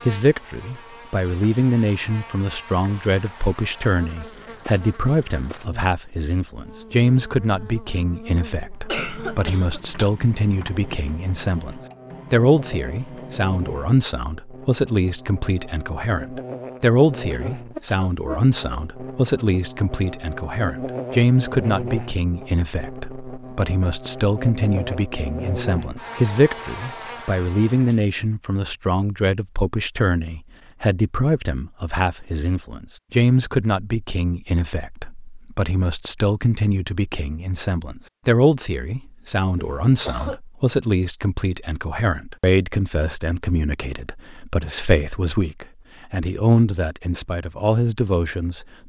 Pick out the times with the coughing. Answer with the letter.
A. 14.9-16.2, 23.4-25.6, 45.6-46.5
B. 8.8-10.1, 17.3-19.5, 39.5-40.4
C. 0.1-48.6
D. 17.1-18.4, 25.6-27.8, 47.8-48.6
B.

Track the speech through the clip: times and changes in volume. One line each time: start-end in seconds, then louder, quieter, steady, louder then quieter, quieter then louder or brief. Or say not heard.
0.1-48.6 steady.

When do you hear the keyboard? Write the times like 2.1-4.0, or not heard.
not heard.